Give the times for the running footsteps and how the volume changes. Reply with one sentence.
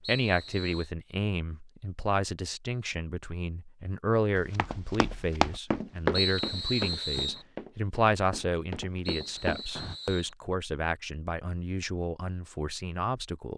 The running footsteps can be heard from 4.3 to 9.9 s, getting quieter then louder.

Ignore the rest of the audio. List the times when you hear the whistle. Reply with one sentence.
The whistle can be heard from 0.0 to 0.9 s, from 6.1 to 7.5 s and from 9.1 to 10.3 s.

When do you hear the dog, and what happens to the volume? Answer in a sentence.
You can't hear the dog here.